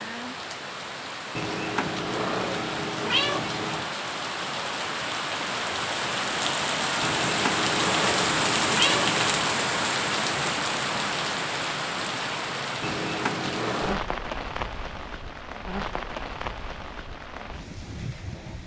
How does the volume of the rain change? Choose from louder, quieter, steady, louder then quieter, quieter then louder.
louder then quieter.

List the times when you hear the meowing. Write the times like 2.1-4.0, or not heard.
1.4-3.9, 7.0-9.4, 12.8-14.0.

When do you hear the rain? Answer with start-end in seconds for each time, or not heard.
0.0-18.6.